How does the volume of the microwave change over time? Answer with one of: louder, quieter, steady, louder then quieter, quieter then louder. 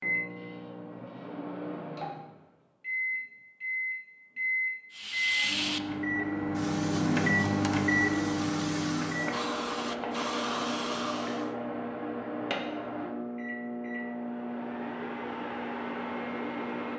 louder then quieter.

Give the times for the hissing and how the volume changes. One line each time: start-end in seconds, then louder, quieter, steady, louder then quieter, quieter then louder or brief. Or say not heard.
4.9-11.6 quieter then louder.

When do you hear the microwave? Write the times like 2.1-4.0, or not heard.
0.0-16.9.